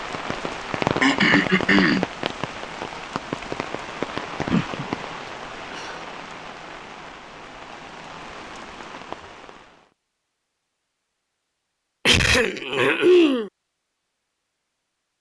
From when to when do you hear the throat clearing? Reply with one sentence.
The throat clearing can be heard from 1.0 to 2.0 s, from 5.2 to 6.1 s and from 12.1 to 13.5 s.